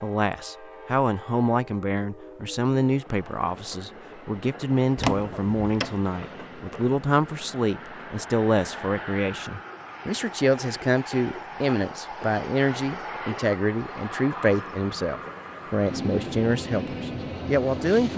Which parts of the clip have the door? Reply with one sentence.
You can hear the door from 5.0 to 6.0 s.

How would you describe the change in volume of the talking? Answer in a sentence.
The volume of the talking stays about the same.